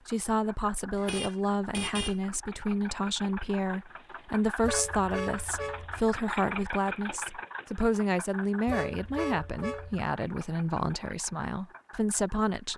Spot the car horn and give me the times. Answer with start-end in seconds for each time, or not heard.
0.9-2.1, 4.6-6.0, 8.7-10.1.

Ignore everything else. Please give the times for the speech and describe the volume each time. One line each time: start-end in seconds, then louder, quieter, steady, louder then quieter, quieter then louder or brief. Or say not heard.
0.1-12.7 steady.